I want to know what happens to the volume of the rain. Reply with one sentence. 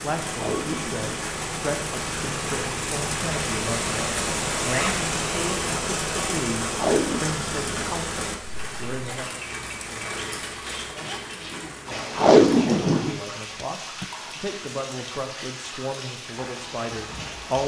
The volume of the rain goes down.